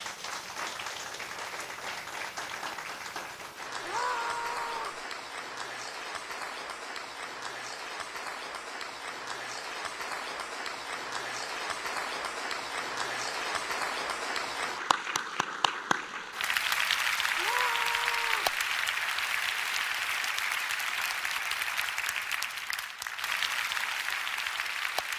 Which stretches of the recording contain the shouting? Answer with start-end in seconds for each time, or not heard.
3.9-5.0, 17.4-18.6.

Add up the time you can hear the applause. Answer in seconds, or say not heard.
25 s.